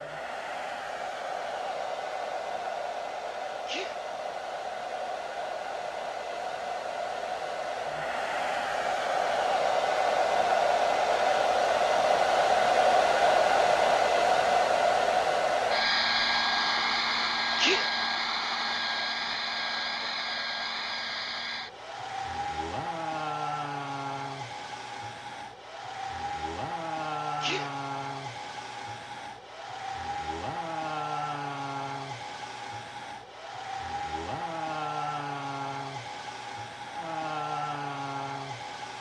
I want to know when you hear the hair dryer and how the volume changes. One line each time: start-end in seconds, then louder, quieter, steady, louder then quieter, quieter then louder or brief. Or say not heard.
0.0-38.9 louder then quieter.